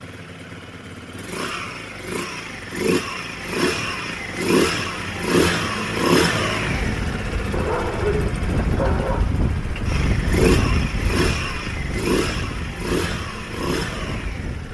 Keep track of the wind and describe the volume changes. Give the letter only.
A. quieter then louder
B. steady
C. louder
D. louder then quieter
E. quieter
D.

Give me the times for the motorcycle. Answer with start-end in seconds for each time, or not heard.
0.0-14.6.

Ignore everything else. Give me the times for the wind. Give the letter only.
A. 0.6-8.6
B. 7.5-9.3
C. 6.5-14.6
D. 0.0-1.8
C.